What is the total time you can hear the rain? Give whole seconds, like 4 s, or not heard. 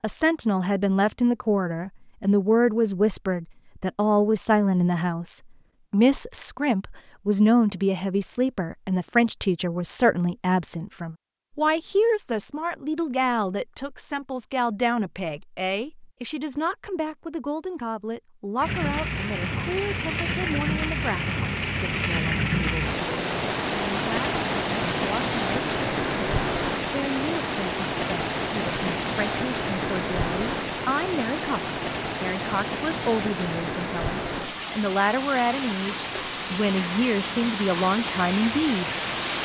21 s.